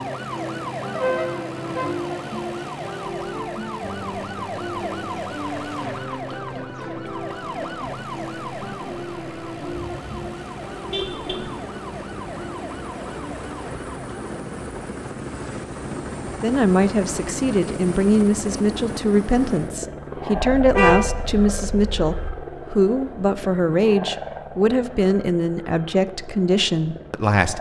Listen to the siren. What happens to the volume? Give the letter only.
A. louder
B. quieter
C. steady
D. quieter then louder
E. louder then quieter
B.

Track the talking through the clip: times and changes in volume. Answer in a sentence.
You can hear the talking from 16.4 to 27.5 s, at a steady volume.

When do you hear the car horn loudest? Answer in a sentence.
The volume of the car horn peaks at 21 seconds.